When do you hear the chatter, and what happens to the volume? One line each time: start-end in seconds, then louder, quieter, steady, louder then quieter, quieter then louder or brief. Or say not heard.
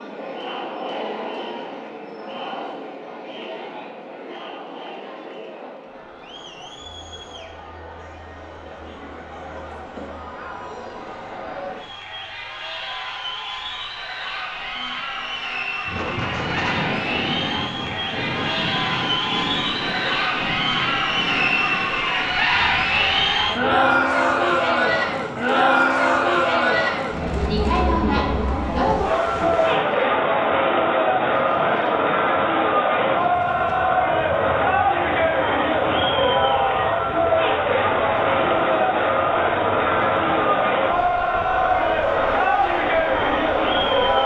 0.0-44.2 louder.